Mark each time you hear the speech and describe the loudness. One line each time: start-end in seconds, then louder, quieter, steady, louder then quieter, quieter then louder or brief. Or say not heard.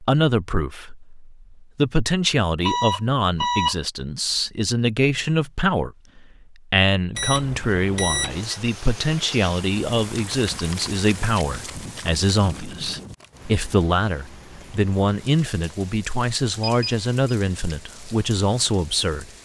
0.0-19.3 steady.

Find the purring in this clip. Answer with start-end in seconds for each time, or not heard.
not heard.